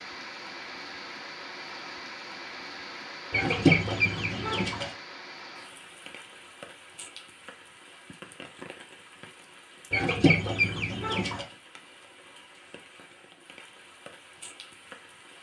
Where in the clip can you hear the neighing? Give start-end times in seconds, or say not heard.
not heard.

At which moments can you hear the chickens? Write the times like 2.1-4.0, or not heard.
3.3-4.9, 9.9-11.4.